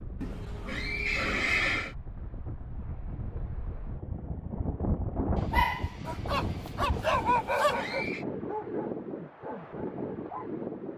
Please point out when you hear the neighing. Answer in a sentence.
The neighing can be heard from 0.2 to 1.9 s and from 7.2 to 8.2 s.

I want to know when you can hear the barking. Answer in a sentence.
The barking can be heard from 5.5 to 10.5 s.